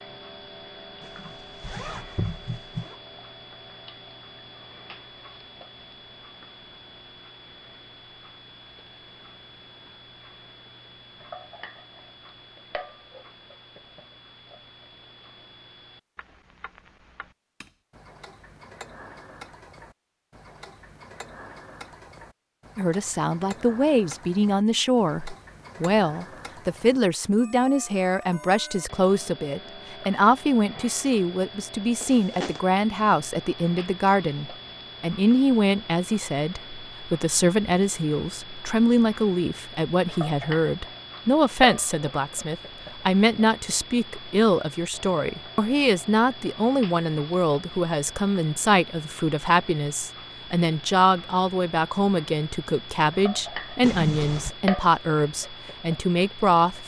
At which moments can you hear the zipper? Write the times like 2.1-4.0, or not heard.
1.0-3.0, 32.0-32.6, 53.8-54.5.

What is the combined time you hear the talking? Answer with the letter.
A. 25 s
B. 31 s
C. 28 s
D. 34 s
D.